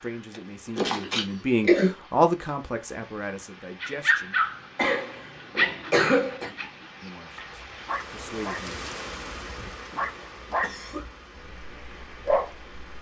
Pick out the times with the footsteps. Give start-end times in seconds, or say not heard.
not heard.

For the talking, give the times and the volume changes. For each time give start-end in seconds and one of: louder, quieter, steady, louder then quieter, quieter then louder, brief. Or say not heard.
0.0-4.3 louder then quieter
7.0-8.8 brief.